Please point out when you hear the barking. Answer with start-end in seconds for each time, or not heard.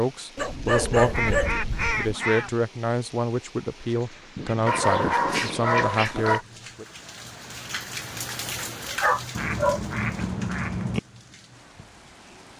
0.3-2.1, 4.7-6.4, 9.0-9.8.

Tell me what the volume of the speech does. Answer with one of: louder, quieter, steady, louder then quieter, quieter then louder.
steady.